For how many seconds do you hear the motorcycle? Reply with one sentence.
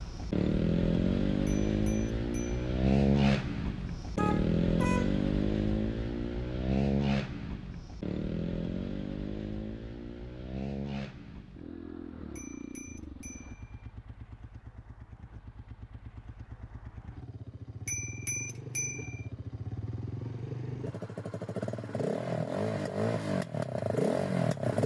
You can hear the motorcycle for 25 seconds altogether.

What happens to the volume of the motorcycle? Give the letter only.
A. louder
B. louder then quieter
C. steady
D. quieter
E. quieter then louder
E.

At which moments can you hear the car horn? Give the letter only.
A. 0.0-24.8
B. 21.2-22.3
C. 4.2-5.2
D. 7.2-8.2
C.